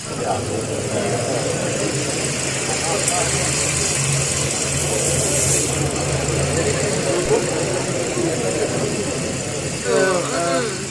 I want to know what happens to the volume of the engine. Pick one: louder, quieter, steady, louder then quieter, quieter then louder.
louder then quieter.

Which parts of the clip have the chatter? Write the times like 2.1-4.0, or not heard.
0.0-10.8.